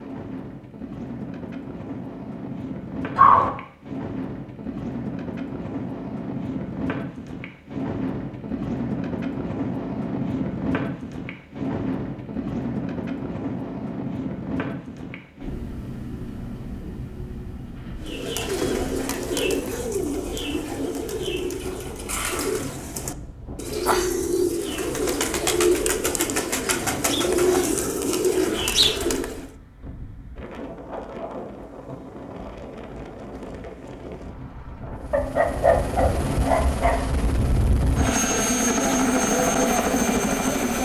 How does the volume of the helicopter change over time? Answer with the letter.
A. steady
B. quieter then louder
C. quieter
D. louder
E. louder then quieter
D.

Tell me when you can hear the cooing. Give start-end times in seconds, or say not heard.
18.1-29.4.